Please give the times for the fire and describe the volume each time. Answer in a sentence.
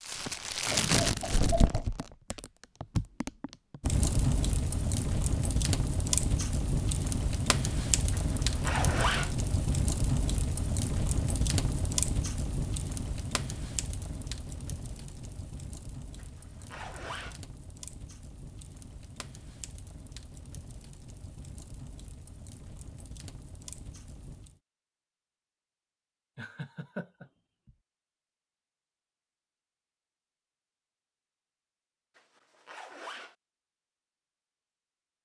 You can hear the fire from 0.0 to 24.6 s, getting quieter.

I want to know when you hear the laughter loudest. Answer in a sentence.
The volume of the laughter peaks at 2 seconds.